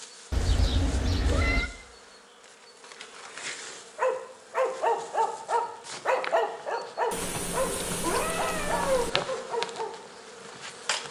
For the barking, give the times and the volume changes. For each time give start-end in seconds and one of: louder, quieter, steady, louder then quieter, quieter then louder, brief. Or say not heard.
4.0-9.9 quieter.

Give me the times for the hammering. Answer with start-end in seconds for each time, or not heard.
not heard.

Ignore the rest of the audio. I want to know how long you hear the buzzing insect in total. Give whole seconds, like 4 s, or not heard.
11 s.